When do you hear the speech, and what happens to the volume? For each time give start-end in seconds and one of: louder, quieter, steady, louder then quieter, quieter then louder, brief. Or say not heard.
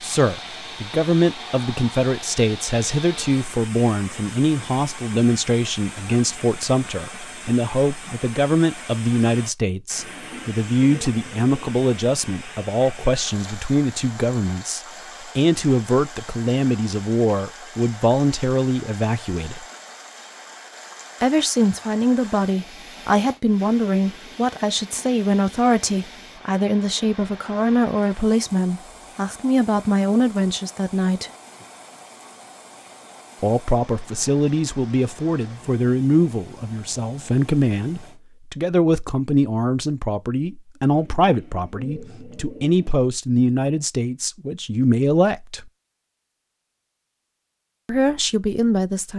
0.0-19.6 steady
21.2-31.3 steady
33.4-45.7 steady
47.9-49.1 brief.